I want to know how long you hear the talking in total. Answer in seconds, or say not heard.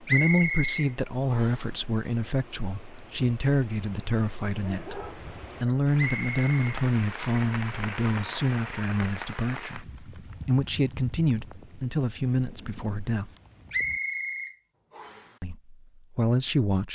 15 s.